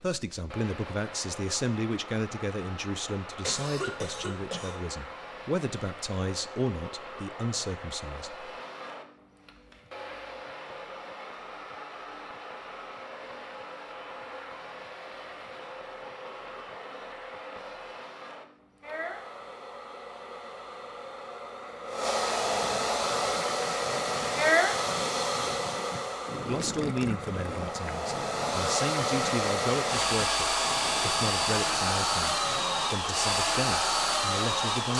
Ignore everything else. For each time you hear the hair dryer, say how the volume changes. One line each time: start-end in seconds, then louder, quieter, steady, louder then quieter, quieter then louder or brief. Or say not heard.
0.0-34.9 louder.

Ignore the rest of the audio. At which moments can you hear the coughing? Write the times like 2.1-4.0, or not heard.
3.4-4.8.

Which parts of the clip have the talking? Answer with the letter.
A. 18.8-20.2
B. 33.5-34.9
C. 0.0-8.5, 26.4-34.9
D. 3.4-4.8
C.